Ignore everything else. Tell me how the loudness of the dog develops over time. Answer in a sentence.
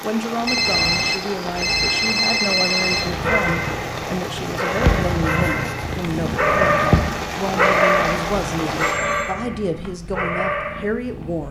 The volume of the dog goes up, then down.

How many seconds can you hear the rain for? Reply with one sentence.
The rain can be heard for 9 seconds in total.